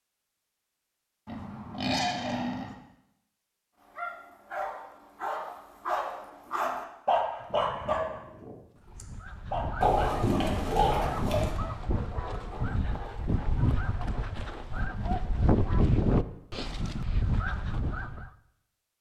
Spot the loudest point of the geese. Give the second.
16 s.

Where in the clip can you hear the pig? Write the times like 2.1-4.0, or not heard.
1.2-2.8, 9.8-11.6.